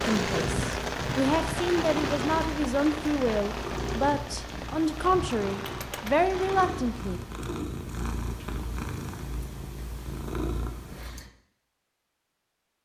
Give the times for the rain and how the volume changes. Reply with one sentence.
You can hear the rain from 0.0 to 7.5 s, getting quieter.